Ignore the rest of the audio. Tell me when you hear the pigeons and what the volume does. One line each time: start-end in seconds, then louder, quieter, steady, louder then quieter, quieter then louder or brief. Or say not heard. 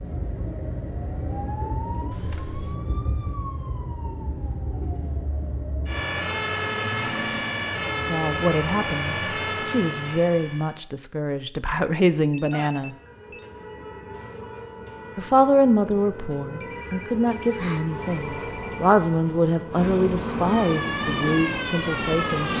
not heard.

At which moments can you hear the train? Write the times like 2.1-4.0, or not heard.
17.8-22.5.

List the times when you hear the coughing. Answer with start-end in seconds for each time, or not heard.
not heard.